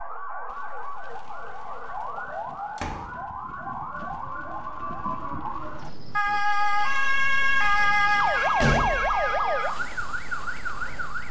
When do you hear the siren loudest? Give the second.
8 s.